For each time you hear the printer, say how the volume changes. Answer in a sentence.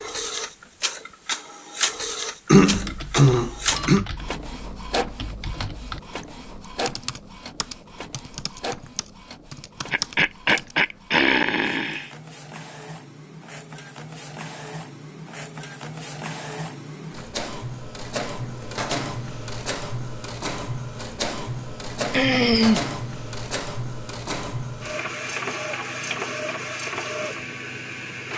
The printer can be heard from 0.0 to 28.3 s, getting quieter then louder.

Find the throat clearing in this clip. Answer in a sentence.
You can hear the throat clearing from 2.5 to 4.0 s, from 9.9 to 12.1 s and from 22.1 to 22.9 s.